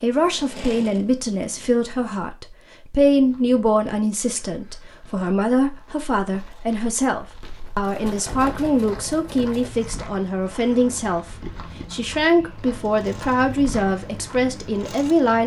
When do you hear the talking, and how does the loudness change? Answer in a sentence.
You can hear the talking from 0.0 to 15.4 s, at a steady volume.